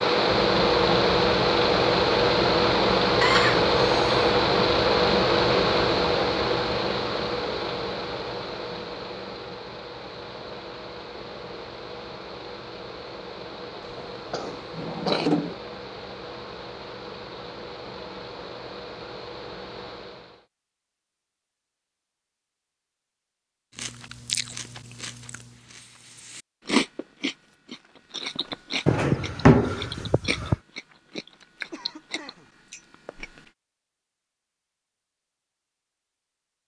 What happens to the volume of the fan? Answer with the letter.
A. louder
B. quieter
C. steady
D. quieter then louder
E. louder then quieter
B.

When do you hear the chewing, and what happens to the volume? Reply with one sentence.
You can hear the chewing from 23.8 to 33.5 s, getting louder then quieter.